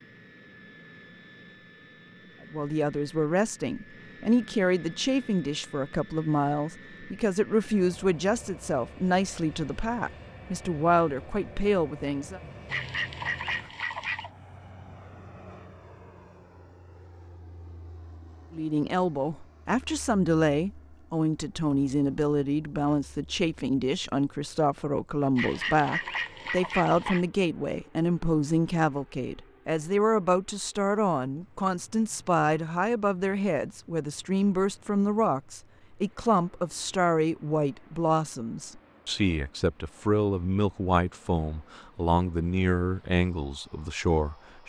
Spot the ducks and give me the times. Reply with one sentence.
The ducks can be heard from 12.7 to 14.3 s and from 25.4 to 27.2 s.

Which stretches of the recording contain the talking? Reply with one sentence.
The talking can be heard from 2.5 to 12.4 s and from 18.5 to 44.6 s.